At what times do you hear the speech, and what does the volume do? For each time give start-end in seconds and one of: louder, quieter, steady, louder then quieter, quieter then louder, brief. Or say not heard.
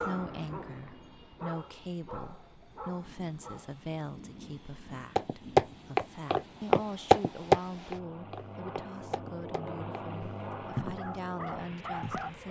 0.0-12.4 steady.